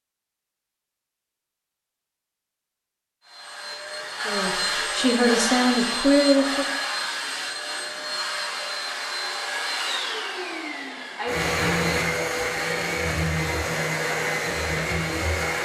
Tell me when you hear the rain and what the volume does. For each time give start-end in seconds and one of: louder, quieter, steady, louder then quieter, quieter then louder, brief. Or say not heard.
not heard.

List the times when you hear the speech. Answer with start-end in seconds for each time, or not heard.
4.2-6.7.